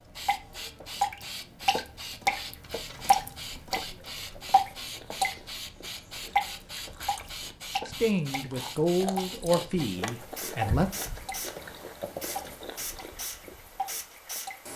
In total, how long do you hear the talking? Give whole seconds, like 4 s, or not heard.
3 s.